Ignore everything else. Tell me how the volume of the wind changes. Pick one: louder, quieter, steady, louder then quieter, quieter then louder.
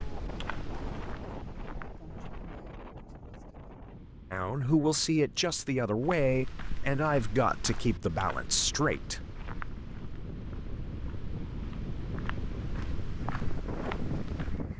quieter then louder.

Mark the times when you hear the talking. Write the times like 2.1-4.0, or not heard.
4.3-9.2.